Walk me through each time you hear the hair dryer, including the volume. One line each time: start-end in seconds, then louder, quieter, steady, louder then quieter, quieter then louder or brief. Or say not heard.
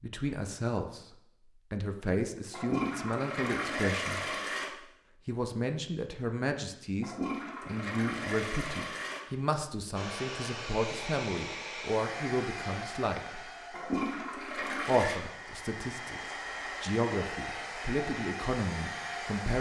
9.9-19.5 quieter then louder.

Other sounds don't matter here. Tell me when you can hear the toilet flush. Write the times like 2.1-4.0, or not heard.
2.4-4.7, 6.9-9.2, 13.6-15.2.